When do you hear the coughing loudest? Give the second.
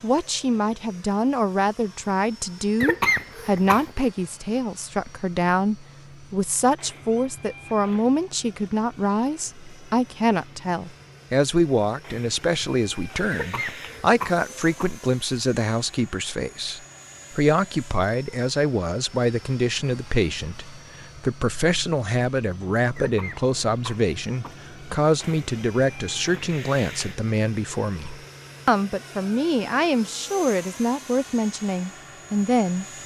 3 s.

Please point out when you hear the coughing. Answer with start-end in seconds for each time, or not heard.
2.8-4.0, 13.3-14.9, 22.9-24.6.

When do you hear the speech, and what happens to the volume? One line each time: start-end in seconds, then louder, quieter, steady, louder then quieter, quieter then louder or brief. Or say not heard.
0.0-32.9 steady.